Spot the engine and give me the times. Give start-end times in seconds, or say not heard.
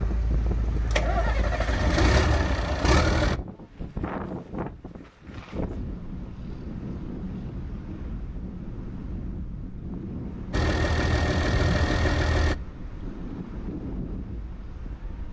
0.0-3.4, 10.5-12.6.